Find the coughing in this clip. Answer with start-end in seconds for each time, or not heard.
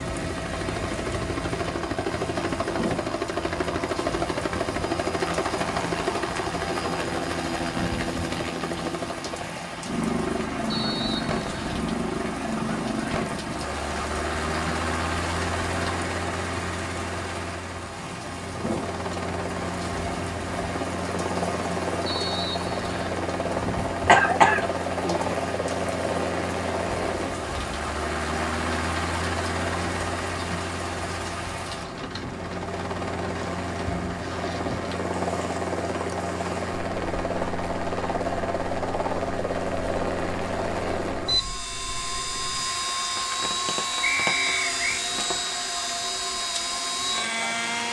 24.1-25.2.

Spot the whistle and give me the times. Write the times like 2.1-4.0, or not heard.
10.7-11.8, 22.1-23.1, 44.0-45.0.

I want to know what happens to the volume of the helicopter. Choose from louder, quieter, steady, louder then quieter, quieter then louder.
steady.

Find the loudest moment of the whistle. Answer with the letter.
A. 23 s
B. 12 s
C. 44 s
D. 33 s
C.